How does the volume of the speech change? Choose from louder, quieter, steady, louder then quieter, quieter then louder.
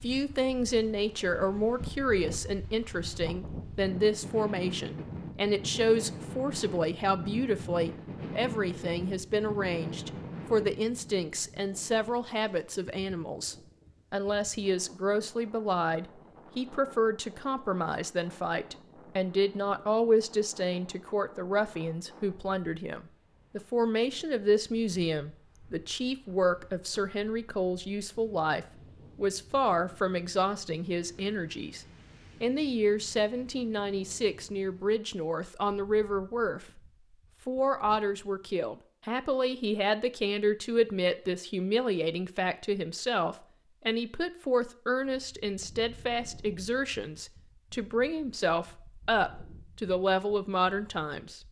steady.